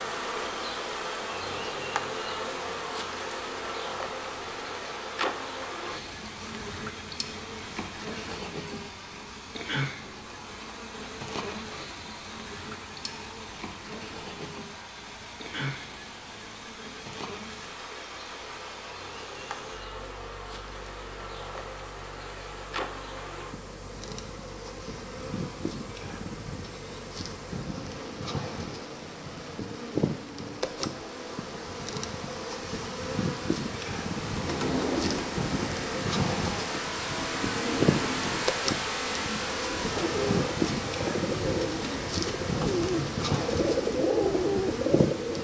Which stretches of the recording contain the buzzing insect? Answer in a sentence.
The buzzing insect can be heard from 0.0 to 45.3 s.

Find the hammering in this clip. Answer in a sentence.
The hammering can't be heard in this clip.